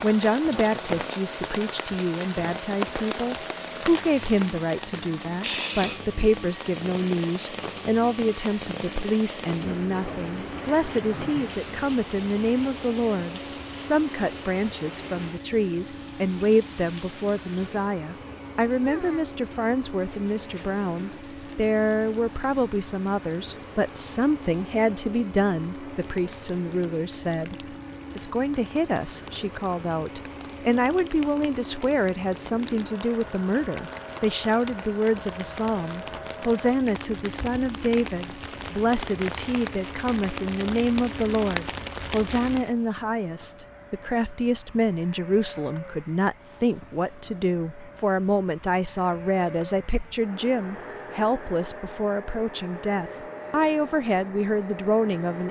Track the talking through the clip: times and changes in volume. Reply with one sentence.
You can hear the talking from 0.0 to 27.6 s, at a steady volume; and from 28.1 to 55.4 s, at a steady volume.